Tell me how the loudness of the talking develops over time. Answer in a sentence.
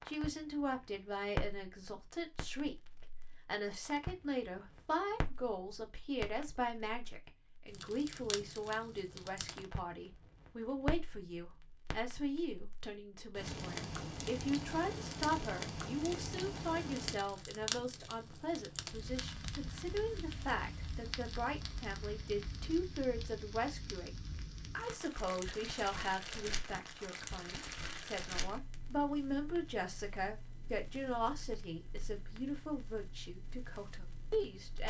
The volume of the talking stays about the same.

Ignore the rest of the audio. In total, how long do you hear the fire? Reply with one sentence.
The fire can be heard for 35 seconds in total.